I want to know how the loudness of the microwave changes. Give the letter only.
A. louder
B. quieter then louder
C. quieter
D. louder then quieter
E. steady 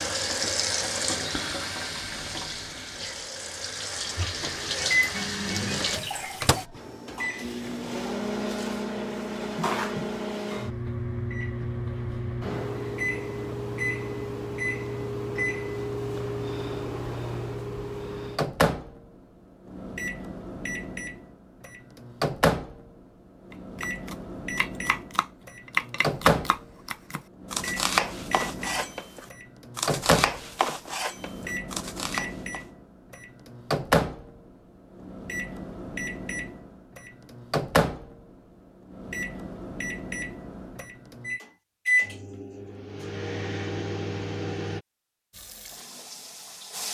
E.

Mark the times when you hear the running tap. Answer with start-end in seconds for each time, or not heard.
0.0-6.7, 45.3-46.9.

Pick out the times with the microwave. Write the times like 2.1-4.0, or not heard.
4.3-44.8.